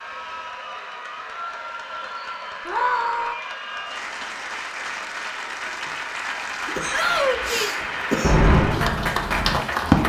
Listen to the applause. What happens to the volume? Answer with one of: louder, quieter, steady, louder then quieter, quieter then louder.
louder.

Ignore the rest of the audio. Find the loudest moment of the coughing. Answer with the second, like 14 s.
8 s.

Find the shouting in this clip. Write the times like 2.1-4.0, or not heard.
2.6-3.4, 6.9-7.8.